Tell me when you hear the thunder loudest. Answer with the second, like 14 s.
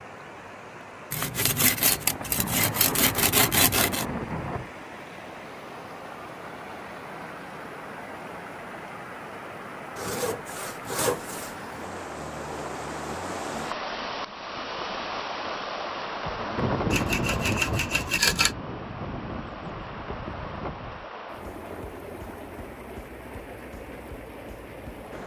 17 s.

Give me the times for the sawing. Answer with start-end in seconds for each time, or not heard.
1.1-4.0, 9.9-11.7, 16.9-18.6.